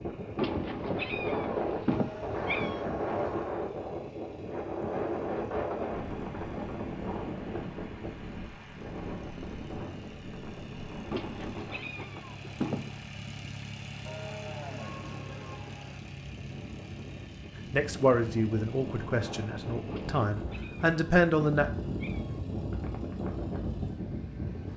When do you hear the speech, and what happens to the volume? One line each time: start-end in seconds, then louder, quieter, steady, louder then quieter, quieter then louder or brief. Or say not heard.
17.7-21.7 quieter then louder.